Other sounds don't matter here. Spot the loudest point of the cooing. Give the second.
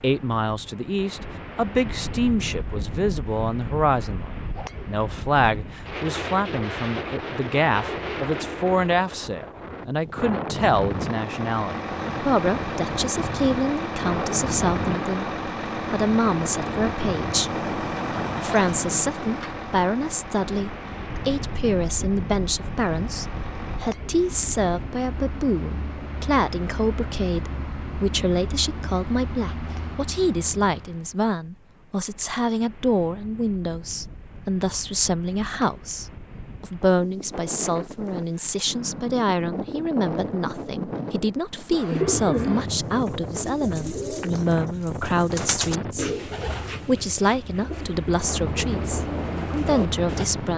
42 s.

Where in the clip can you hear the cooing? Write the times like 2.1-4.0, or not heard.
41.7-50.2.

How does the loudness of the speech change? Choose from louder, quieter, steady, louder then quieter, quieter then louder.
steady.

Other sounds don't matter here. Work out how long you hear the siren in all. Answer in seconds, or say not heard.
not heard.